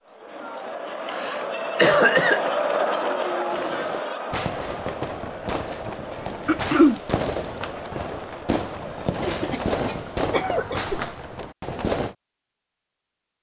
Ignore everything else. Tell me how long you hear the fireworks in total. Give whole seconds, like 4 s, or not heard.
9 s.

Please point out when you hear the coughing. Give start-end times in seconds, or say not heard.
0.1-2.5, 6.5-7.0, 9.2-11.0.